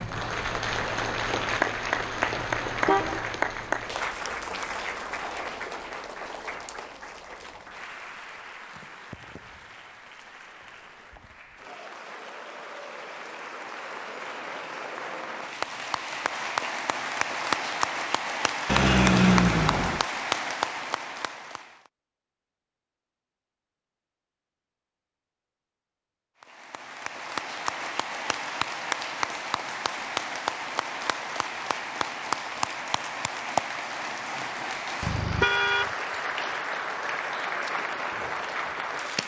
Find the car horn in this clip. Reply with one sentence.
The car horn can be heard from 2.4 to 3.2 s, from 18.6 to 20.1 s and from 35.0 to 35.9 s.